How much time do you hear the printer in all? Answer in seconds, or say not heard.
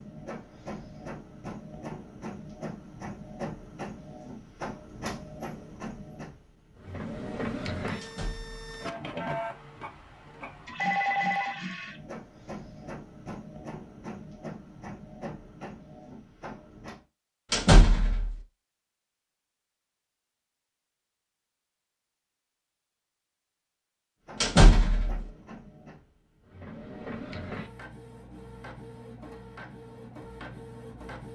24 s.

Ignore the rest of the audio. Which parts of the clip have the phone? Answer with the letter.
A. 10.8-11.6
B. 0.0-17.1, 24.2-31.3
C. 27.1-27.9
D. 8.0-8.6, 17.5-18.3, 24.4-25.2
A.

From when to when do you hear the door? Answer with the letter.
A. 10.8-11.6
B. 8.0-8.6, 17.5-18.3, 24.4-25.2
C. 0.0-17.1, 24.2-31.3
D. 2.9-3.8
B.